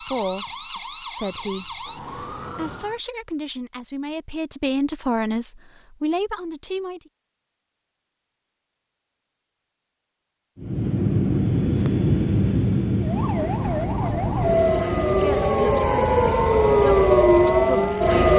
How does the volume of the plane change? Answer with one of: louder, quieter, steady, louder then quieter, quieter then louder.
quieter.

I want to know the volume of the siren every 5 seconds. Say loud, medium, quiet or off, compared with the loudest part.
quiet, off, medium, loud.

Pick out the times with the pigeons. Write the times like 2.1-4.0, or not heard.
not heard.